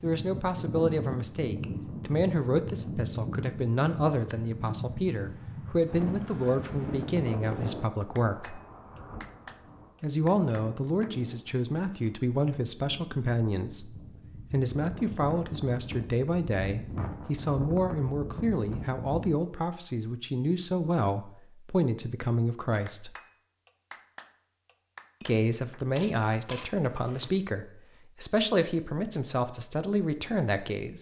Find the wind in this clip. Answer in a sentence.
The wind can be heard from 0.0 to 19.4 s.